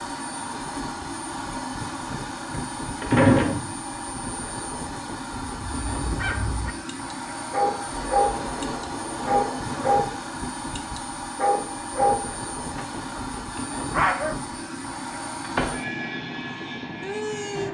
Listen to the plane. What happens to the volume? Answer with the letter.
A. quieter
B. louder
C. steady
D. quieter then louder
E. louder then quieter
C.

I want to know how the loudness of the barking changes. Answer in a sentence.
The volume of the barking goes up.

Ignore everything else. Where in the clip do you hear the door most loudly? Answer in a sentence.
The loudest moment of the door is at 3 seconds.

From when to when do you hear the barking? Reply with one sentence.
You can hear the barking from 5.4 to 10.2 s and from 10.8 to 14.4 s.